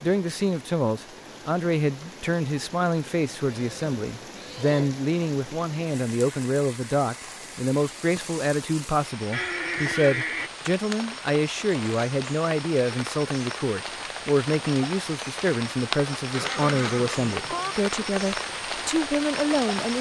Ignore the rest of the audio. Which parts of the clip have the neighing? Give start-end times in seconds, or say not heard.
3.5-5.0, 9.3-10.5, 16.3-17.8.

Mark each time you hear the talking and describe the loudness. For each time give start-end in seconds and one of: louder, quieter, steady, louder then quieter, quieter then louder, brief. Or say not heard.
0.0-19.9 steady.